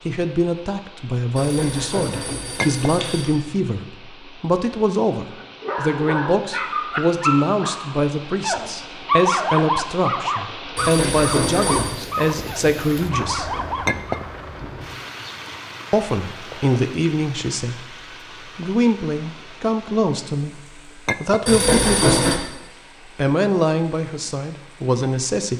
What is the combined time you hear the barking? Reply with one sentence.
You can hear the barking for 9 seconds altogether.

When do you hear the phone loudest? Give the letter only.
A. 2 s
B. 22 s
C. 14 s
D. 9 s
B.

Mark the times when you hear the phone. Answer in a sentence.
You can hear the phone from 1.4 to 3.4 s, from 10.8 to 11.9 s and from 21.4 to 22.4 s.